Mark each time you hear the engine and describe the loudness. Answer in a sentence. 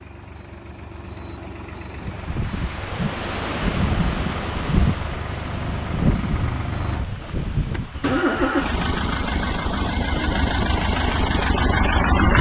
The engine can be heard from 0.0 to 12.3 s, getting louder.